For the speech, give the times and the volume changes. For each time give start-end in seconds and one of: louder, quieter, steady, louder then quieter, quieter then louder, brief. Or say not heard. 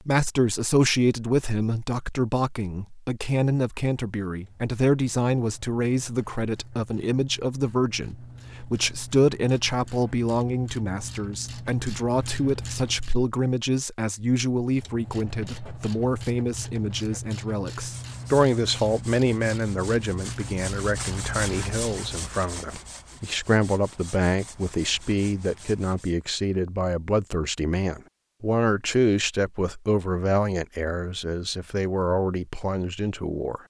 0.1-33.6 steady.